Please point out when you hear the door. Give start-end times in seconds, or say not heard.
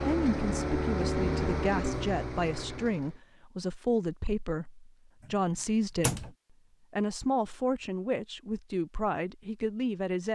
5.2-6.3.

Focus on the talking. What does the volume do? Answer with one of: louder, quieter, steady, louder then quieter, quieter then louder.
steady.